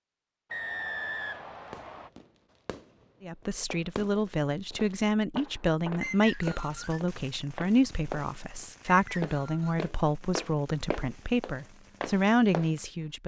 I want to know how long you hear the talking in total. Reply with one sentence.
You can hear the talking for 10 seconds altogether.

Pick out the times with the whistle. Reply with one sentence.
You can hear the whistle from 0.5 to 2.1 s, from 6.0 to 7.0 s and from 8.9 to 9.8 s.